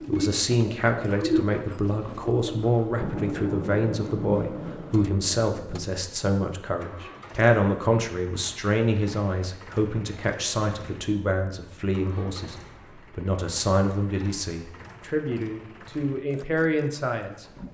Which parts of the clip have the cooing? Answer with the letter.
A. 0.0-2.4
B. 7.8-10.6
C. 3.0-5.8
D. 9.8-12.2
A.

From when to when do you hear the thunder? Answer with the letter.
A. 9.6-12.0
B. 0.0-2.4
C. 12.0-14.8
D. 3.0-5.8
D.